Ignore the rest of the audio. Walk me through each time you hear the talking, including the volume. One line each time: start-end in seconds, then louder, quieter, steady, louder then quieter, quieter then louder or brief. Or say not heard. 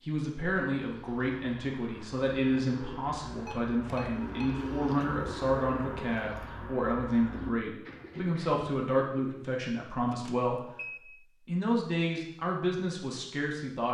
0.0-13.8 steady.